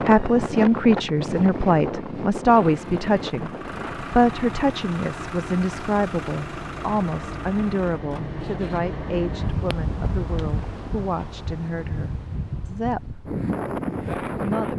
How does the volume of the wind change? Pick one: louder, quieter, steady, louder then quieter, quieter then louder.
quieter then louder.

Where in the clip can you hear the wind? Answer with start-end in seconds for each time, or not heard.
0.0-14.7.